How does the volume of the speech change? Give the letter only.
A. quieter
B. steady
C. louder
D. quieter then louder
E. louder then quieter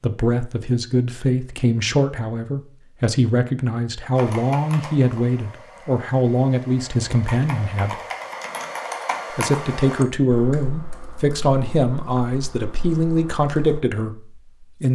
B.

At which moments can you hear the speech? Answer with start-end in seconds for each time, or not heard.
0.0-8.0, 9.3-14.8.